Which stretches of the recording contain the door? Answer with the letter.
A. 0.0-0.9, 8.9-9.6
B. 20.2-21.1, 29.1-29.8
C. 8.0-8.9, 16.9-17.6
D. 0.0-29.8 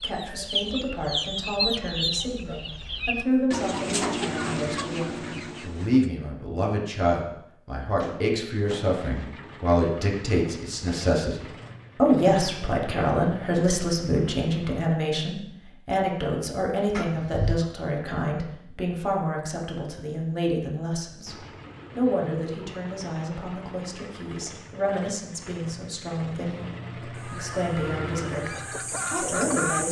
C.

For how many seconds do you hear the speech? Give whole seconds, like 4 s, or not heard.
30 s.